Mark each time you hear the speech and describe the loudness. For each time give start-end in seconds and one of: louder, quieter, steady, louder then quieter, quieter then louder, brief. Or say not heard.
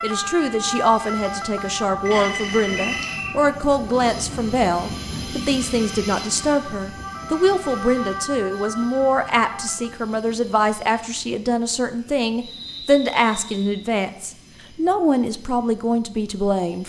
0.0-16.8 steady.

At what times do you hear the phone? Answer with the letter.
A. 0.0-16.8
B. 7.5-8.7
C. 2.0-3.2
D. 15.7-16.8
C.